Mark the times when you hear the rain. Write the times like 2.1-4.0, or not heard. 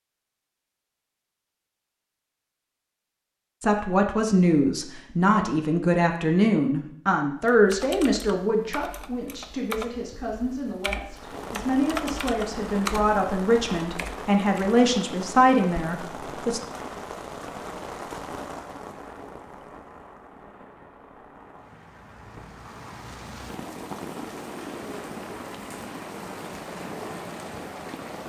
11.1-28.2.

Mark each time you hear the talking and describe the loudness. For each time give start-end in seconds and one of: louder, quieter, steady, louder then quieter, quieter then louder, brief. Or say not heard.
3.6-16.6 quieter then louder.